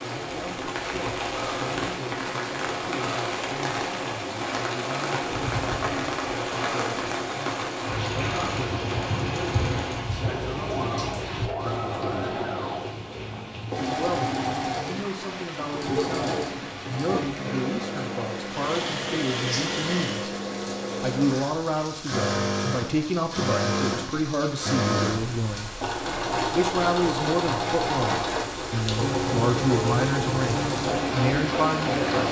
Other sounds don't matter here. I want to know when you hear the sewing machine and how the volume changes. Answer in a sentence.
The sewing machine can be heard from 0.0 to 32.2 s, getting louder.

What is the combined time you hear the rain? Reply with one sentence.
You can hear the rain for 32 seconds altogether.